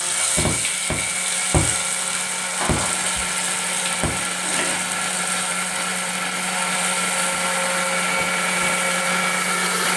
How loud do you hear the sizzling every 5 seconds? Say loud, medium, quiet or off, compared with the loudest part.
loud, medium.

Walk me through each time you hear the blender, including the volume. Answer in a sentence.
The blender can be heard from 0.0 to 9.9 s, getting louder.